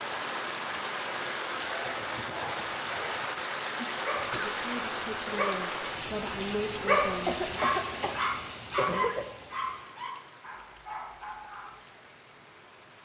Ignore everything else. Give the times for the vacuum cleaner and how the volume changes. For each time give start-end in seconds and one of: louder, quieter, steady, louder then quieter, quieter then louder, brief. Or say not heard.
not heard.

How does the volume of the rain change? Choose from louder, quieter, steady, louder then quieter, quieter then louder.
quieter.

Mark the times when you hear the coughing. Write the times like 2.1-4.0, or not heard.
3.8-4.7, 7.2-9.2.